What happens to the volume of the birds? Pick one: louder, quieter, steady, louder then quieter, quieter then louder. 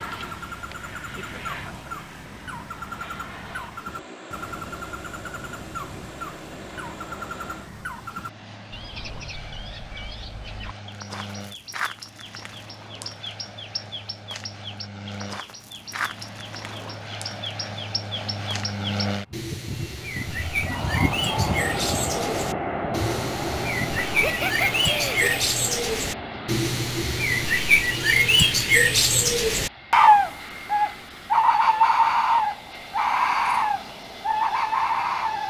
louder.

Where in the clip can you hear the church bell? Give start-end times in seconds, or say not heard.
not heard.